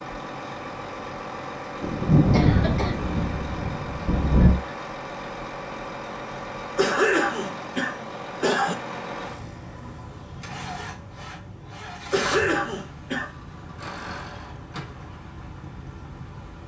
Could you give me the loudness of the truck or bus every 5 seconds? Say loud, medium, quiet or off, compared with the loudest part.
loud, loud, loud, medium.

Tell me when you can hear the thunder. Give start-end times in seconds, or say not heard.
1.8-4.6.